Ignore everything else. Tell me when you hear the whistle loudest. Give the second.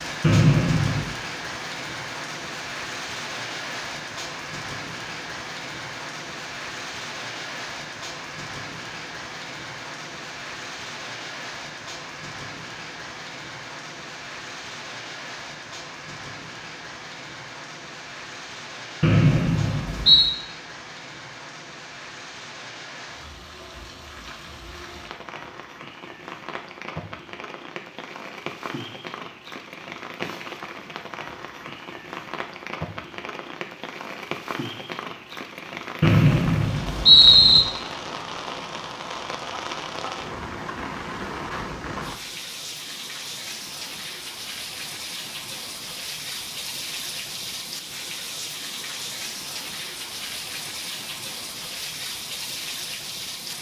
37 s.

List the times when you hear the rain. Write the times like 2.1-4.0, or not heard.
0.0-53.5.